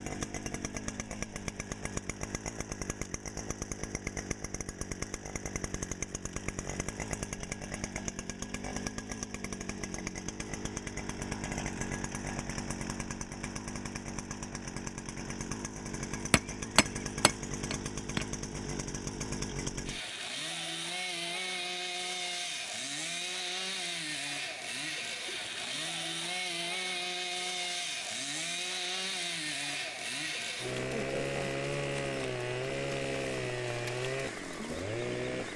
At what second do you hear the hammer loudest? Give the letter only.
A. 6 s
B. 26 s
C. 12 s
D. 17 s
D.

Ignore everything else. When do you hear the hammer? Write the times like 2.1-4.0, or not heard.
16.3-18.2.